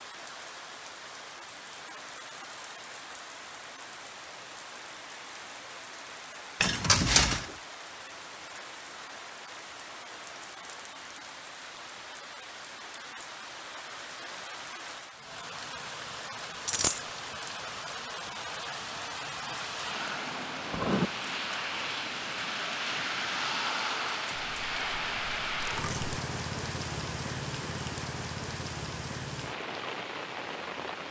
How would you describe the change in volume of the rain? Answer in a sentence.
The loudness of the rain goes up.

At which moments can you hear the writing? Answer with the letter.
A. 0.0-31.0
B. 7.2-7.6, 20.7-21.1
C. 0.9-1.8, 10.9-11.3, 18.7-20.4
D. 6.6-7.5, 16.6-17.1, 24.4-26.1
B.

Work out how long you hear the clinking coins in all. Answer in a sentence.
You can hear the clinking coins for 3 seconds altogether.